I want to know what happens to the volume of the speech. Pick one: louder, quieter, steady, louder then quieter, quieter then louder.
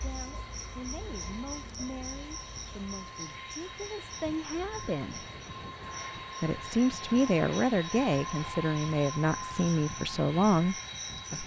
louder.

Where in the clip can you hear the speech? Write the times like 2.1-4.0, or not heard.
0.0-5.2, 6.4-11.4.